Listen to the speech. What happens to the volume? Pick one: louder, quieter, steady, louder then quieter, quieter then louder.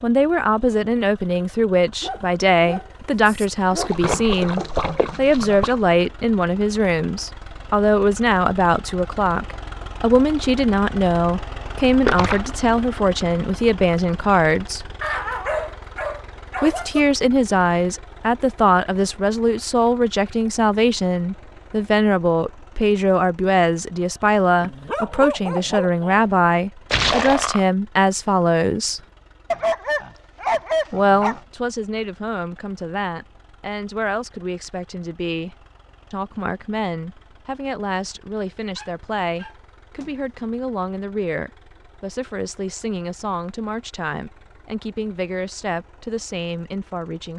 quieter.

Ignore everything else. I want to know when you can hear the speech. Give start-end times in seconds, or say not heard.
0.0-14.8, 16.6-29.0, 30.9-47.3.